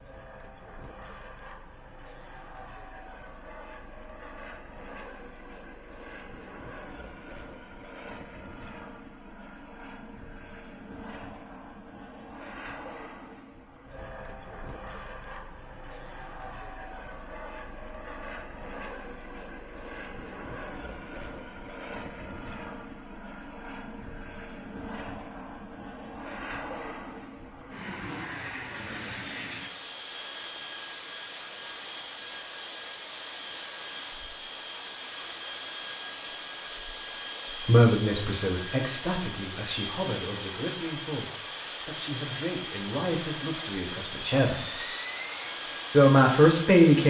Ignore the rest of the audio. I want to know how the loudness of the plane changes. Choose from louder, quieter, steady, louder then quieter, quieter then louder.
louder.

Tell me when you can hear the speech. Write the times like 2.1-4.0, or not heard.
37.5-44.8, 45.9-47.0.